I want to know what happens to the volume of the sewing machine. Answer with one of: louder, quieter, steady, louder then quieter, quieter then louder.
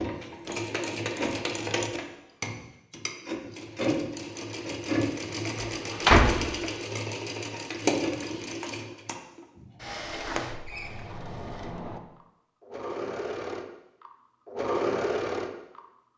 quieter then louder.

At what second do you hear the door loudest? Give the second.
6 s.